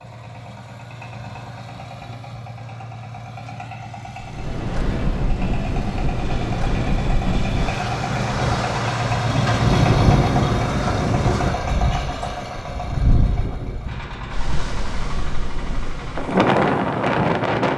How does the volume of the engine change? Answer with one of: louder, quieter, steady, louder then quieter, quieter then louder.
louder then quieter.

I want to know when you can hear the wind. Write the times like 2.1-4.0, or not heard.
4.2-17.7.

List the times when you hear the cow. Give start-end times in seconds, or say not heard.
not heard.